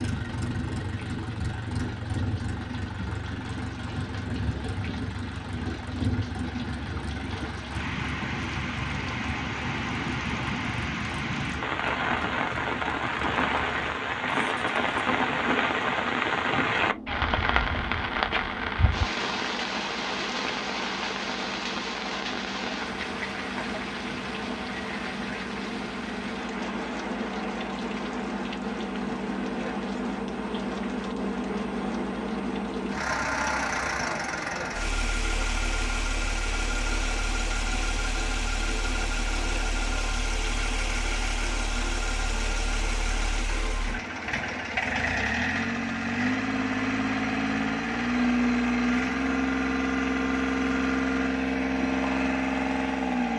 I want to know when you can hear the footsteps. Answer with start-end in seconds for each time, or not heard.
not heard.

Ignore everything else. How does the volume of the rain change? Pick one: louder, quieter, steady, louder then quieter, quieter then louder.
louder then quieter.